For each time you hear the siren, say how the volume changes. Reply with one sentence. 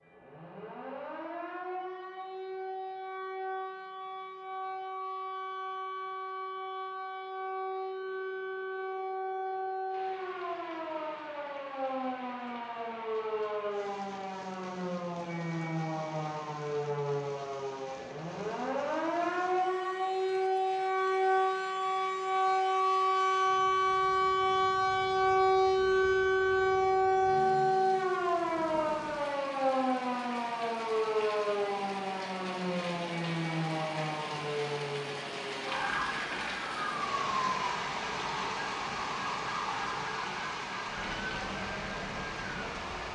You can hear the siren from 0.0 to 43.1 s, getting louder then quieter.